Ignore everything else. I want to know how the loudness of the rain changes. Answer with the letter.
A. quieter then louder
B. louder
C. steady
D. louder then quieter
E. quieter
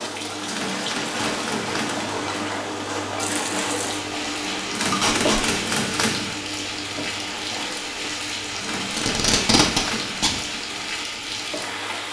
C.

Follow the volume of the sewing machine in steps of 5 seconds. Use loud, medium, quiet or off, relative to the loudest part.
loud, loud, medium.